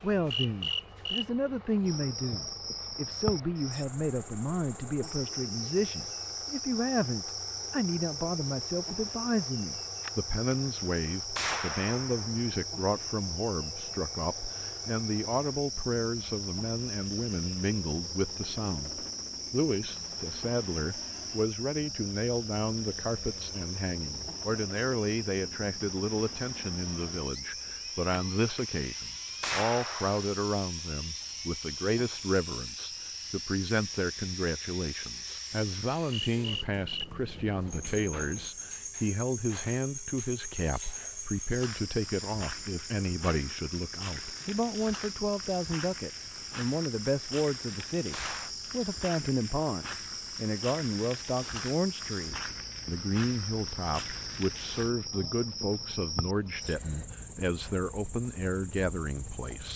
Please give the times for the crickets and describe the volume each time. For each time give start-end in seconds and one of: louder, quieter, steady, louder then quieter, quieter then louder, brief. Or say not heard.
0.0-59.7 steady.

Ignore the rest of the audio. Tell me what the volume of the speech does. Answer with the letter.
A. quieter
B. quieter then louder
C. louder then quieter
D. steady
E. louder
D.